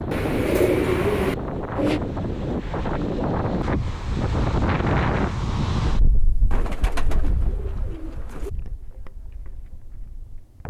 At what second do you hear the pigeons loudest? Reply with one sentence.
The volume of the pigeons peaks at 1 second.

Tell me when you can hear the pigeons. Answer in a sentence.
The pigeons can be heard from 0.1 to 2.0 s and from 6.5 to 8.5 s.